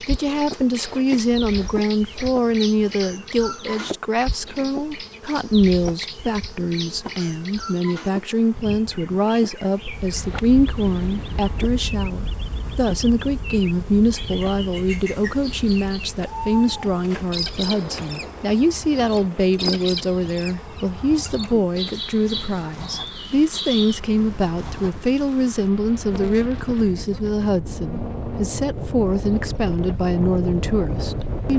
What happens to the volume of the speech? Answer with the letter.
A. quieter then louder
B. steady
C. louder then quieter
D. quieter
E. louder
B.